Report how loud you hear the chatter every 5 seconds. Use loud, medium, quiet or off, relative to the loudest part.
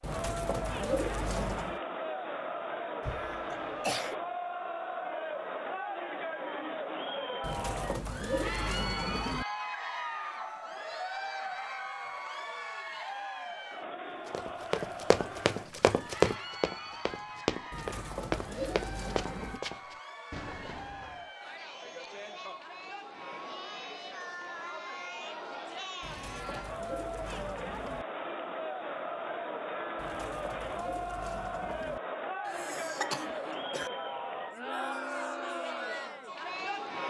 loud, loud, loud, medium, medium, loud, loud, loud.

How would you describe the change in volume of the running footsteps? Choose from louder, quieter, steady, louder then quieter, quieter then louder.
quieter.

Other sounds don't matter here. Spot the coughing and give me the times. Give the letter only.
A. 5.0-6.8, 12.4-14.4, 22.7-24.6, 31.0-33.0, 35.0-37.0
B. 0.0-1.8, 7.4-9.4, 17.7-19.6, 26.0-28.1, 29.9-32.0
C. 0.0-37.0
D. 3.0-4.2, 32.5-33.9
D.